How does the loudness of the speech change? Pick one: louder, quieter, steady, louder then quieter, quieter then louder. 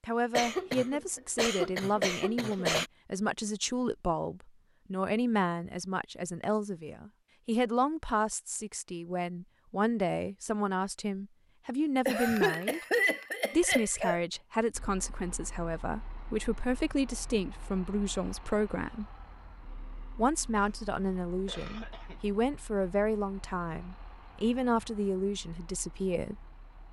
steady.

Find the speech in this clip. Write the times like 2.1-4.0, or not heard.
0.0-12.8, 13.5-19.1, 20.1-26.4.